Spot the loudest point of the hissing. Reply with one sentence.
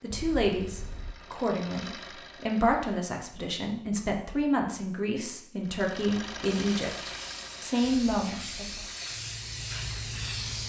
The volume of the hissing peaks at 10 seconds.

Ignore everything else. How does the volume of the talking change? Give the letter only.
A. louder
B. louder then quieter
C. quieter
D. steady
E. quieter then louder
D.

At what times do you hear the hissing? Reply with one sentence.
You can hear the hissing from 6.4 to 10.6 s.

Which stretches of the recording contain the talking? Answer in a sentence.
The talking can be heard from 0.0 to 8.8 s.